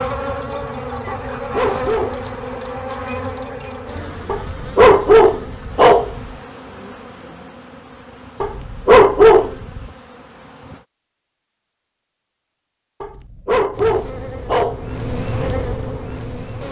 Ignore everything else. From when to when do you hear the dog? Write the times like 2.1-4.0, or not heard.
1.1-2.6, 4.2-6.3, 8.4-9.8, 13.0-14.9.